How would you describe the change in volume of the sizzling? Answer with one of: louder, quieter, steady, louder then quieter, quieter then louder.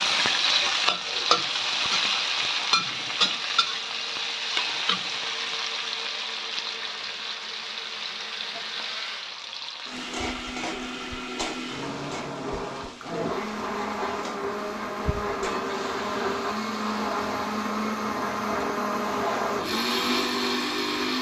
quieter.